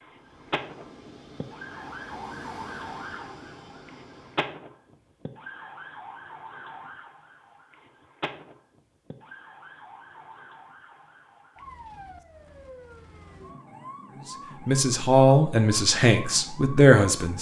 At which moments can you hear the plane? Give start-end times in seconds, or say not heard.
0.1-4.5.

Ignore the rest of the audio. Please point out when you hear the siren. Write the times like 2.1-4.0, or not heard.
0.0-17.3.